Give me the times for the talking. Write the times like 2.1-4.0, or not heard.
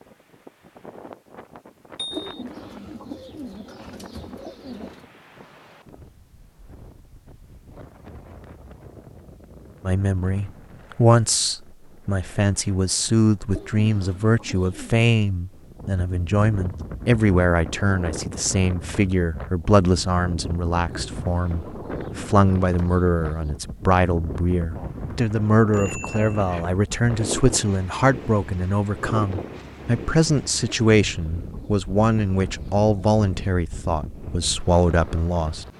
9.8-35.6.